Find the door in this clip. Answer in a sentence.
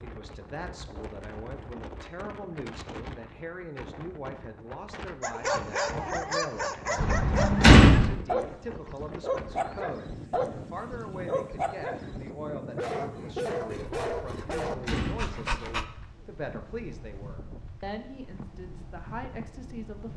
The door can be heard from 7.0 to 8.1 s and from 14.2 to 15.3 s.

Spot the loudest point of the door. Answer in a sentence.
The loudest moment of the door is at 8 seconds.